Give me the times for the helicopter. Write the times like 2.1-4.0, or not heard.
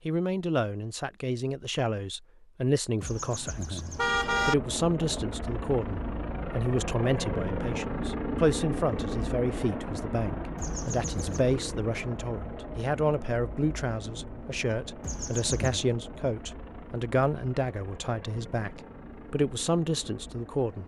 3.8-20.8.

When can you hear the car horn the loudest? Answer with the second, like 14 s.
4 s.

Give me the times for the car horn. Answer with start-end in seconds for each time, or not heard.
3.0-4.5, 10.6-11.4, 15.0-15.8.